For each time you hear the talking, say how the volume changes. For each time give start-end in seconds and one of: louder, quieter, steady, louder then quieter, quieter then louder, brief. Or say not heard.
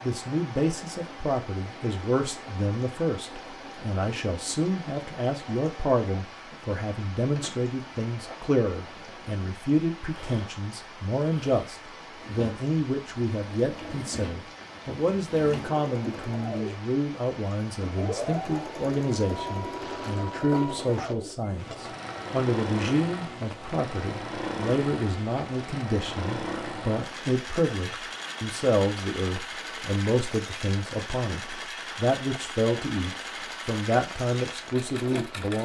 0.0-35.5 steady.